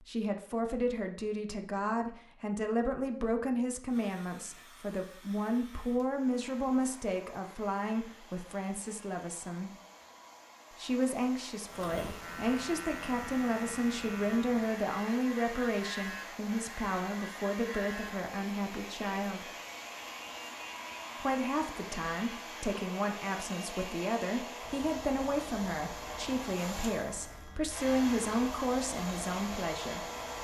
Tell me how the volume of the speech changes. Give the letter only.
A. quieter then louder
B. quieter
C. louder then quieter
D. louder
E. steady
E.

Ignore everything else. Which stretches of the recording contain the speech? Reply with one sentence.
The speech can be heard from 0.0 to 9.7 s, from 10.7 to 19.5 s and from 21.2 to 30.1 s.